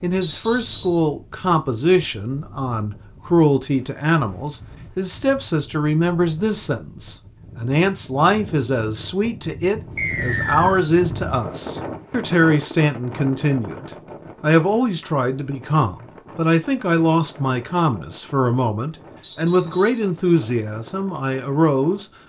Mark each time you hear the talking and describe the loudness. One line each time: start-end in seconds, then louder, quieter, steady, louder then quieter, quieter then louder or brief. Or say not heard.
0.0-22.1 steady.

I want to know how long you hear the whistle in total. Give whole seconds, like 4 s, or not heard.
3 s.